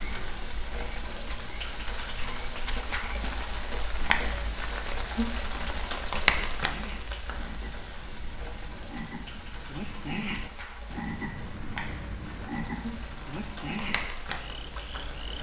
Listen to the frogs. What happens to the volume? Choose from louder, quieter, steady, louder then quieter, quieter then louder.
louder.